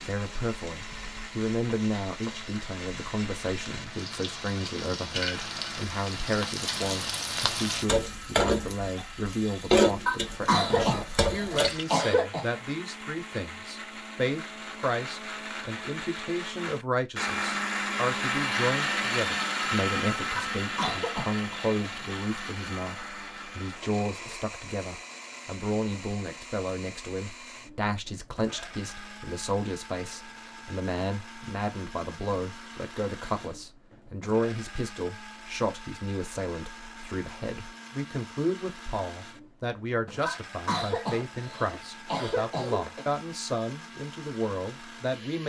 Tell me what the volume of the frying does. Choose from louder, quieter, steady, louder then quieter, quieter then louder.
louder.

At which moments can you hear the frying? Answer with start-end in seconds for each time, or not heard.
0.0-11.8.